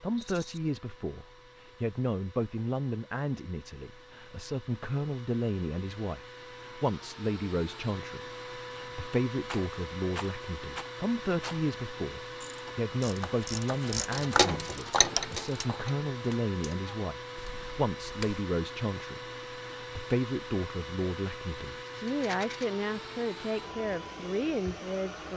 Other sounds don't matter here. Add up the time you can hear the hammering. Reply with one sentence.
You can't hear the hammering here.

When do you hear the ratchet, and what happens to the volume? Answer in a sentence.
You can hear the ratchet from 12.4 to 18.4 s, getting louder then quieter.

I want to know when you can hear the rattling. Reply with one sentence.
You can hear the rattling from 0.1 to 0.6 s, from 9.4 to 11.6 s and from 22.1 to 22.6 s.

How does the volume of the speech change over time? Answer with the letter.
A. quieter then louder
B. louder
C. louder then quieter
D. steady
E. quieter
D.